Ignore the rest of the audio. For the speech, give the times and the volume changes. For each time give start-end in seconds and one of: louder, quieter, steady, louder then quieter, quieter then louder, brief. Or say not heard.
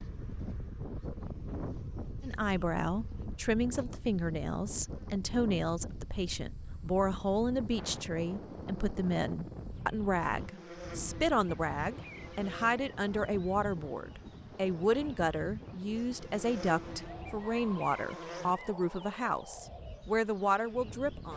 2.2-21.3 steady.